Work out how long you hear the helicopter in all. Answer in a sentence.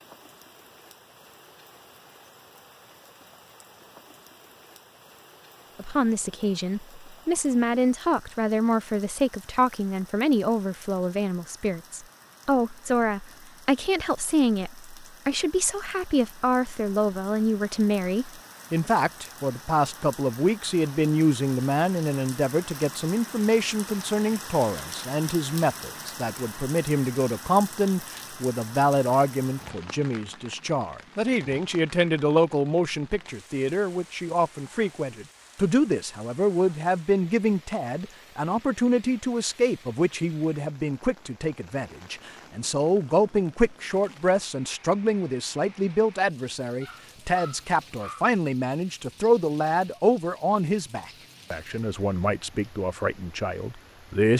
The helicopter can't be heard in this clip.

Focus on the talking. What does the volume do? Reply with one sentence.
The loudness of the talking stays about the same.